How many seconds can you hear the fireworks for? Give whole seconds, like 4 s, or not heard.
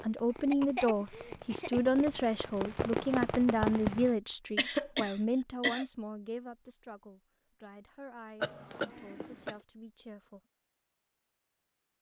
4 s.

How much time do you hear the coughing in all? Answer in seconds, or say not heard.
4 s.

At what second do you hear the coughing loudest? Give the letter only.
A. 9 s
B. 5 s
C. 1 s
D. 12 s
B.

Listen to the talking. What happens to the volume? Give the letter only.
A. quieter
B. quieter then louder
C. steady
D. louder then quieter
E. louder
A.